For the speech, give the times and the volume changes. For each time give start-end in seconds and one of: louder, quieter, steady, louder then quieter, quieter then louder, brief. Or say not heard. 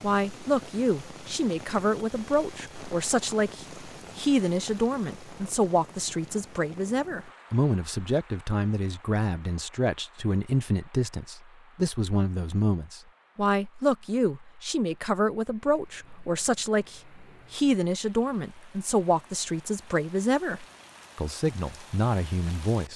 0.0-22.9 steady.